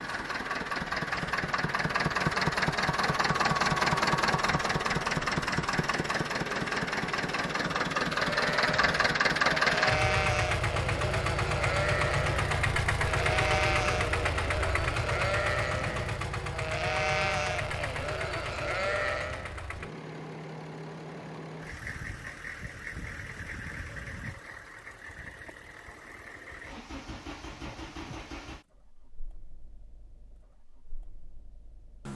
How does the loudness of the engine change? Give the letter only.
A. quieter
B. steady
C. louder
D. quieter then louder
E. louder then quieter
A.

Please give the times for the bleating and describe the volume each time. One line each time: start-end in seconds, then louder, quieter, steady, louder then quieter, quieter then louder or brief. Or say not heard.
8.3-19.6 steady.